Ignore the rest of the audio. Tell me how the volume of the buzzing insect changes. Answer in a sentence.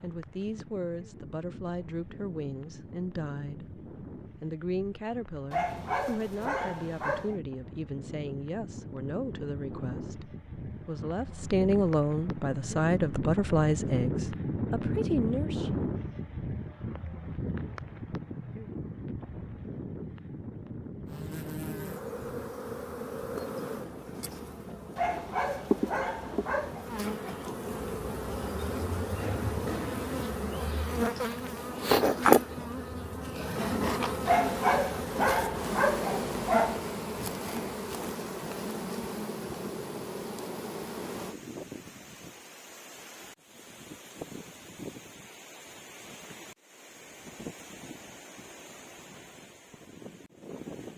The loudness of the buzzing insect goes up, then down.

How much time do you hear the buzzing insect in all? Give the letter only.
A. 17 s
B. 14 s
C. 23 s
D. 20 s
D.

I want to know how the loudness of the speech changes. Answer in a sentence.
The loudness of the speech goes up.